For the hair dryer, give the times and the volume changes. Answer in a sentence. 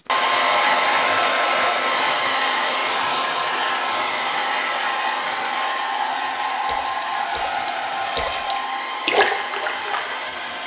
The hair dryer can be heard from 0.1 to 10.6 s, getting quieter.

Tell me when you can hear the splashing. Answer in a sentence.
You can hear the splashing from 6.7 to 10.6 s.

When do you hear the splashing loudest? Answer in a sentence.
The volume of the splashing peaks at 9 seconds.